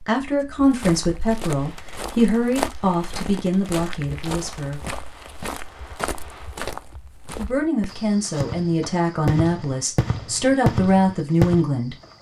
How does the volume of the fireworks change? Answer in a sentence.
The volume of the fireworks goes up.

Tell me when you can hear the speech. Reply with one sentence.
The speech can be heard from 0.0 to 4.9 s and from 7.3 to 11.9 s.